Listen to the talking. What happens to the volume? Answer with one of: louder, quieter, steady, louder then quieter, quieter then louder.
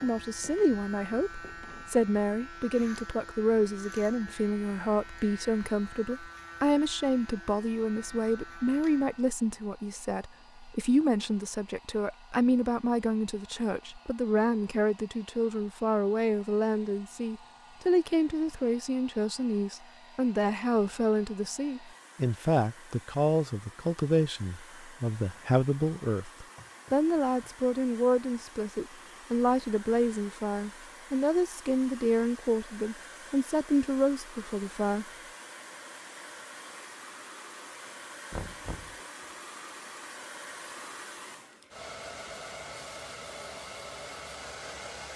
steady.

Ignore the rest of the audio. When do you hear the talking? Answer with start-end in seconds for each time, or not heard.
0.0-35.0.